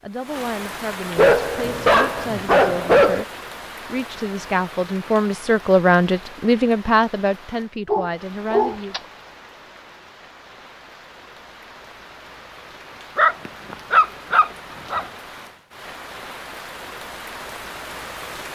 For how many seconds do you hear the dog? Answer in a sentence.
The dog can be heard for 5 seconds in total.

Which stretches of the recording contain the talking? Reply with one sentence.
The talking can be heard from 0.0 to 8.9 s.